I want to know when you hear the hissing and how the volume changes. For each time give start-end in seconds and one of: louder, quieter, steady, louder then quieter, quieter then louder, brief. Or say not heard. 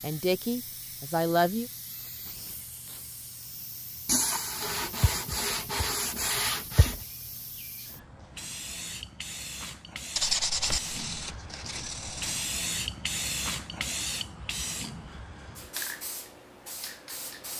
0.0-17.5 louder.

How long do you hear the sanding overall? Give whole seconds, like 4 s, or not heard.
5 s.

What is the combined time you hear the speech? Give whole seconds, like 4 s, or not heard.
2 s.